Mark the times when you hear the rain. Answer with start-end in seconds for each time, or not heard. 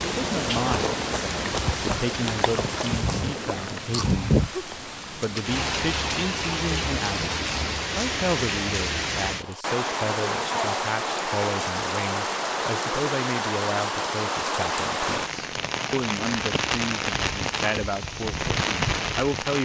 0.0-19.6.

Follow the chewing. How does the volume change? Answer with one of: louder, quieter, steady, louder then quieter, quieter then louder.
quieter.